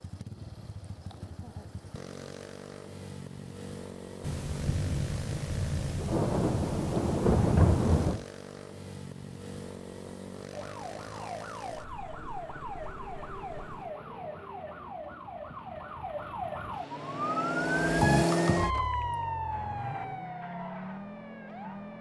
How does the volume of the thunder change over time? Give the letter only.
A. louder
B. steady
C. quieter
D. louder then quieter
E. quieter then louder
A.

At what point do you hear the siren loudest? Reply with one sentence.
The loudest moment of the siren is at 18 seconds.